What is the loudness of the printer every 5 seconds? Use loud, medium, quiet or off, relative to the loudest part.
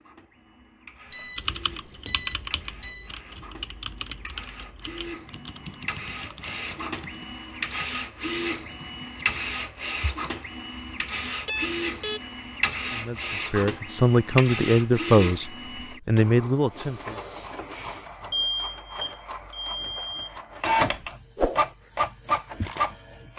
quiet, medium, medium, medium, loud.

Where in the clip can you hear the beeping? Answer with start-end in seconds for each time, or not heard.
1.1-3.1, 11.4-12.2, 18.3-20.4.